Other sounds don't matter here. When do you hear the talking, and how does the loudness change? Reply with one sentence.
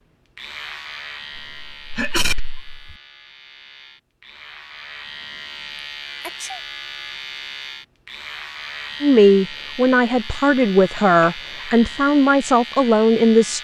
You can hear the talking from 9.0 to 13.6 s, at a steady volume.